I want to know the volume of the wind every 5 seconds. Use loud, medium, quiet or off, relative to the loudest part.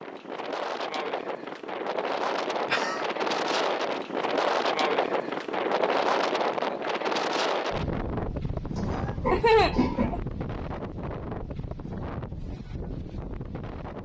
loud, loud, medium.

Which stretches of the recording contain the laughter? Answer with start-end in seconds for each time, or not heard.
2.5-3.0, 8.8-10.2.